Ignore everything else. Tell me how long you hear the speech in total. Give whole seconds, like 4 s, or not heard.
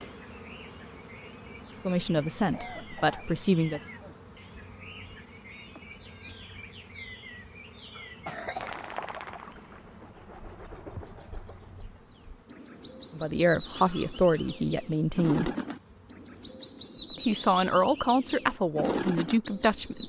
7 s.